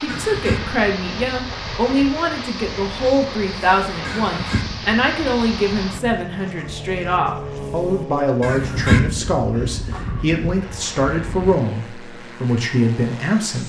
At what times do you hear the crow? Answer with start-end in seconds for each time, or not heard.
0.1-11.6.